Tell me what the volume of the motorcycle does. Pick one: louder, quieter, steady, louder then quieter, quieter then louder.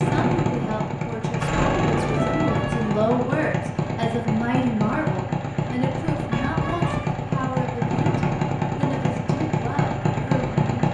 steady.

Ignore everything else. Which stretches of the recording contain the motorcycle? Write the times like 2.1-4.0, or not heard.
0.0-10.8.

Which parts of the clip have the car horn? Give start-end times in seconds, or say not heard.
1.4-3.0, 6.3-7.1.